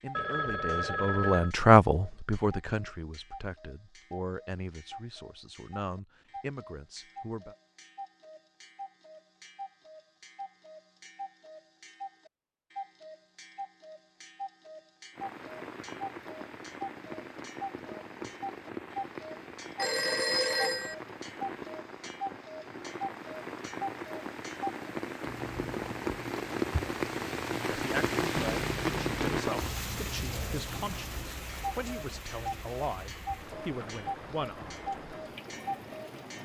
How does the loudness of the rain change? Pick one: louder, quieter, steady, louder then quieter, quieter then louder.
louder then quieter.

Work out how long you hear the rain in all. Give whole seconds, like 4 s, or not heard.
21 s.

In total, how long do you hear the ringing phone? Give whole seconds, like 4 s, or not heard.
4 s.